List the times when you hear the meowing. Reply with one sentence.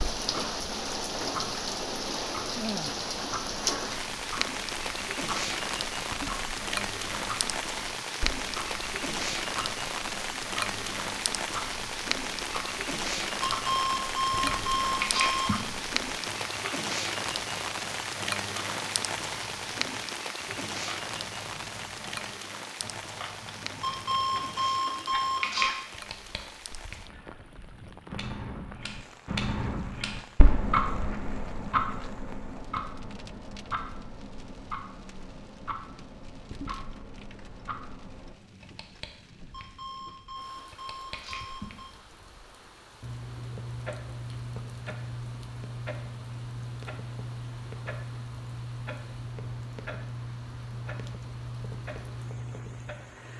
The meowing can't be heard in this clip.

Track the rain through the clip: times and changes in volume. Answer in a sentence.
The rain can be heard from 0.0 to 53.3 s, getting quieter.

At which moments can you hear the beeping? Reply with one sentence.
You can hear the beeping from 13.4 to 15.6 s, from 23.8 to 25.8 s and from 39.5 to 42.0 s.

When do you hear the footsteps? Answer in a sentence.
The footsteps can't be heard in this clip.